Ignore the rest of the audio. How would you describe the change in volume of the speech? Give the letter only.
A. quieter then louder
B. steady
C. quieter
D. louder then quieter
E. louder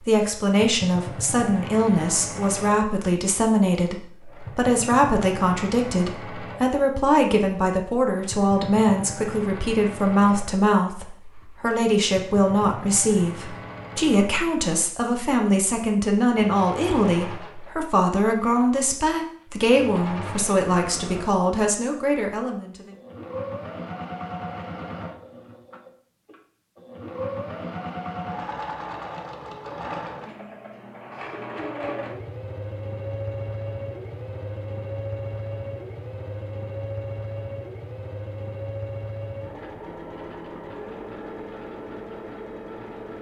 B.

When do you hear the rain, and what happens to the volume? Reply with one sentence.
The rain can't be heard in this clip.